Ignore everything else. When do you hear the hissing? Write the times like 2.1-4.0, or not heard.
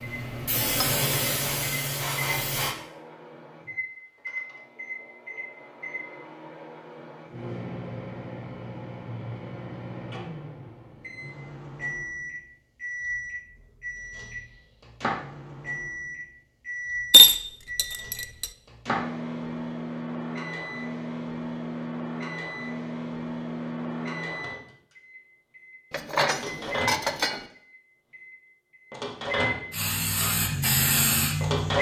0.0-2.8, 29.7-31.7.